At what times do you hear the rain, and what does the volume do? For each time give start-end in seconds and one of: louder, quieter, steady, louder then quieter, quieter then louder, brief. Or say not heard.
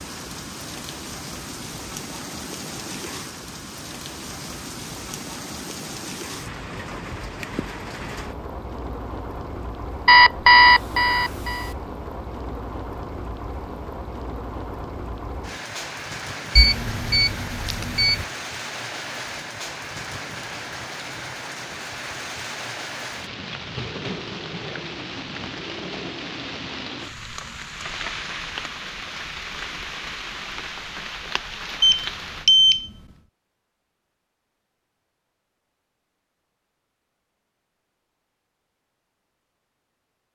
0.0-32.5 steady.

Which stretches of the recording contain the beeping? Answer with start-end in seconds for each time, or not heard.
10.1-11.7, 16.6-18.2, 31.8-32.9.